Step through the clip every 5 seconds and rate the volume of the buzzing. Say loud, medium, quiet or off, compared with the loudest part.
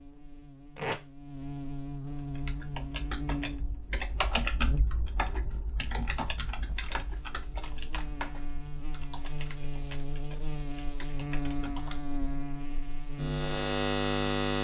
medium, quiet, loud.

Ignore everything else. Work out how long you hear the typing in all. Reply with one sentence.
You can hear the typing for 10 seconds altogether.